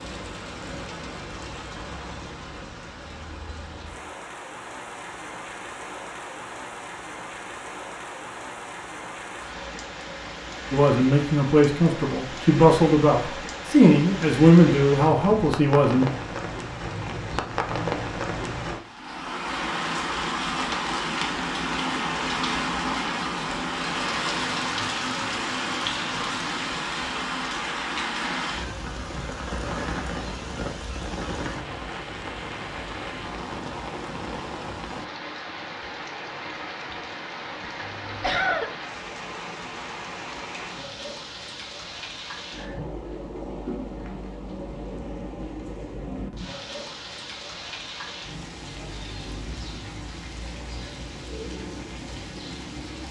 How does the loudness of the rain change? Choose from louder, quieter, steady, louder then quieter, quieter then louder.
louder then quieter.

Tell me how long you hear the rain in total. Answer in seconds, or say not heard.
53 s.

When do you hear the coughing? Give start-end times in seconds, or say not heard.
37.8-38.7.